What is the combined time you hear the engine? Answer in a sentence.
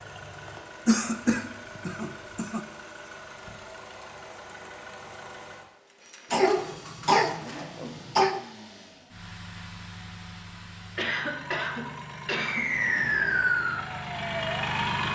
The engine can be heard for 15 seconds in total.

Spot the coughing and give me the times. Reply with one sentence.
You can hear the coughing from 0.8 to 2.6 s, from 6.3 to 8.4 s and from 10.9 to 12.7 s.